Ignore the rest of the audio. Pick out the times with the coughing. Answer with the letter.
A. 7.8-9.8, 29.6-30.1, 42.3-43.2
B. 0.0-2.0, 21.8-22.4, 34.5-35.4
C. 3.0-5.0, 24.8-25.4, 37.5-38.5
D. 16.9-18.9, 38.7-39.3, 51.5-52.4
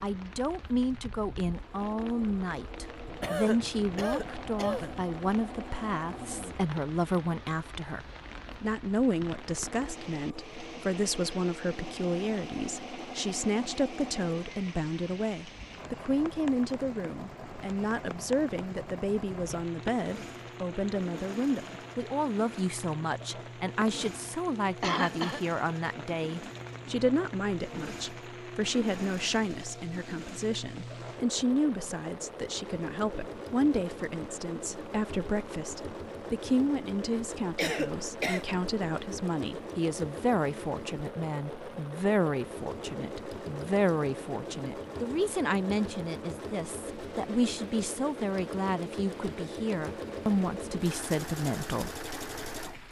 C.